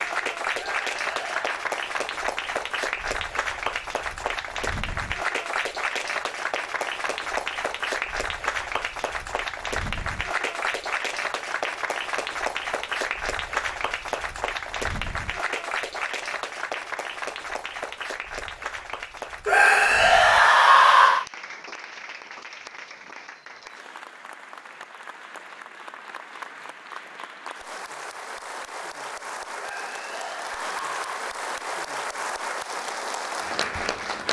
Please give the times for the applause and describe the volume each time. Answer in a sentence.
You can hear the applause from 0.0 to 34.2 s, getting quieter then louder.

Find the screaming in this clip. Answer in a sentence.
The screaming can be heard from 0.6 to 1.6 s, from 19.4 to 21.2 s and from 29.6 to 31.1 s.